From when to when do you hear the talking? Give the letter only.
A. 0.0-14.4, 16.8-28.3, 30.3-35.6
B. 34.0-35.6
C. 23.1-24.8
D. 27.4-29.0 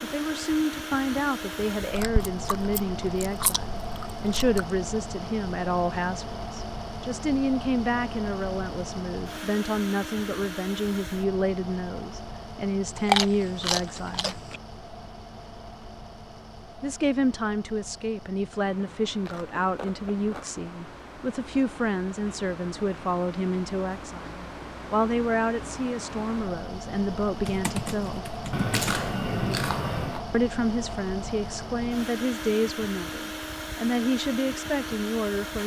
A.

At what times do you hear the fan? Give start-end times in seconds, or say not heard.
0.0-35.6.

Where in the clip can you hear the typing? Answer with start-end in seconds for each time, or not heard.
27.4-29.0.